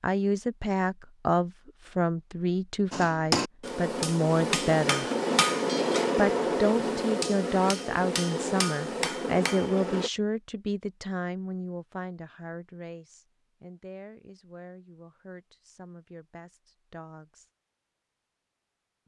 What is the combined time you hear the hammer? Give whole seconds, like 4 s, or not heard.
7 s.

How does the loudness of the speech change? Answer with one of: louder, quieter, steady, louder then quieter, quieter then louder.
quieter.